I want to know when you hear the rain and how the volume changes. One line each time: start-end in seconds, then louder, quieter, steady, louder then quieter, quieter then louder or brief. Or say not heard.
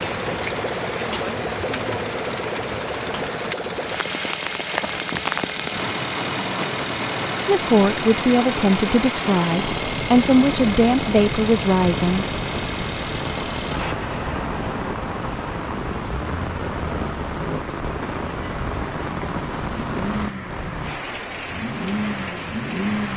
0.0-23.1 steady.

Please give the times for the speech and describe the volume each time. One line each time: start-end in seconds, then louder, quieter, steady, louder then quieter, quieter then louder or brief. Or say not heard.
7.5-12.2 steady.